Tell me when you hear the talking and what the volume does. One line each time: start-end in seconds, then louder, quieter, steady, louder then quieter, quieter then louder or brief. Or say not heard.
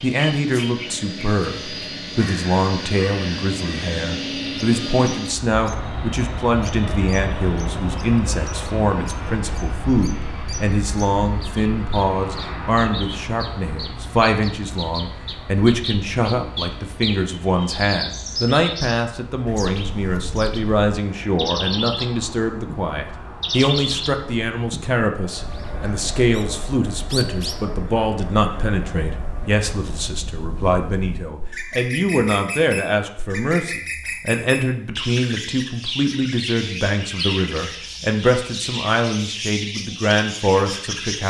0.0-41.2 steady.